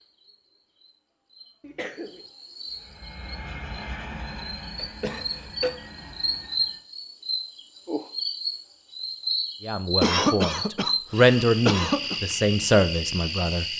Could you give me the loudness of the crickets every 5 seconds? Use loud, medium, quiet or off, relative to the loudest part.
quiet, loud, loud.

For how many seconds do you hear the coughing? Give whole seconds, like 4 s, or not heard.
4 s.